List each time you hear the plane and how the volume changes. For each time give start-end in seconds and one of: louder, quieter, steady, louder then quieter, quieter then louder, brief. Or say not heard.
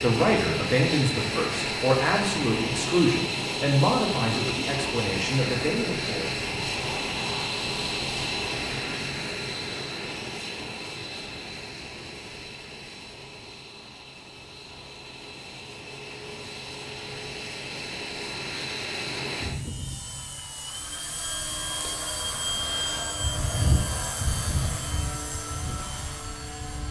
0.0-26.8 quieter then louder.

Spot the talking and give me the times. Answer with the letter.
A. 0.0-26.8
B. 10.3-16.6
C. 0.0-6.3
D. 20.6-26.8
C.